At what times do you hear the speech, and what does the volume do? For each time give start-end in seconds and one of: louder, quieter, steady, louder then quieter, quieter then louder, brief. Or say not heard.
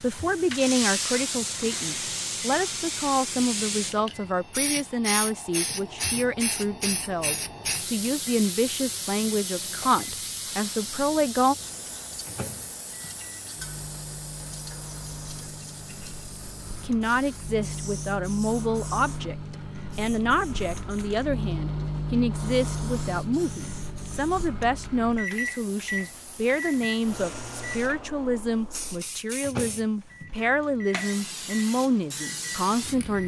0.0-11.6 steady
16.8-33.2 steady.